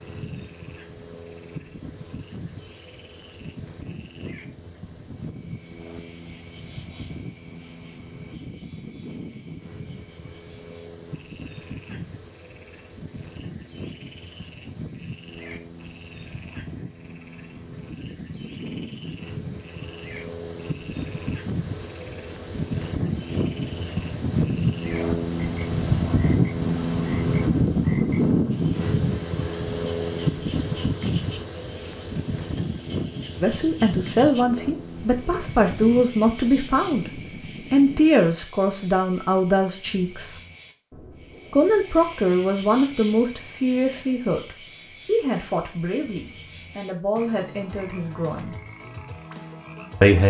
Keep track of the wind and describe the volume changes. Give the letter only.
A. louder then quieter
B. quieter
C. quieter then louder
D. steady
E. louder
A.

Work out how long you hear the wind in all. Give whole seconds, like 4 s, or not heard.
38 s.